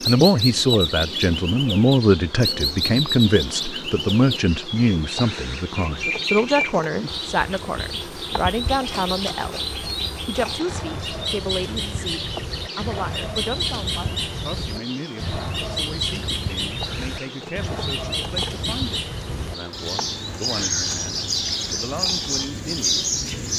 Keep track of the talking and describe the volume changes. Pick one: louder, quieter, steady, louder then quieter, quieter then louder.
quieter.